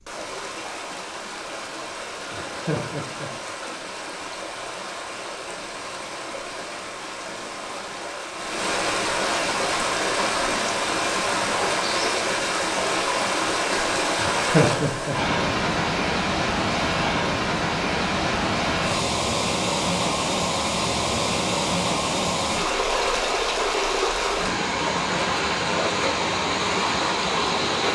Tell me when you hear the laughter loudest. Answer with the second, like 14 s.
15 s.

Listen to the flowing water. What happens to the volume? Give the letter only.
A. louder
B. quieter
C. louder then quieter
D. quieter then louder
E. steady
A.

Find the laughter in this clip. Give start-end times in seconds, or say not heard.
2.2-3.3, 14.1-15.2.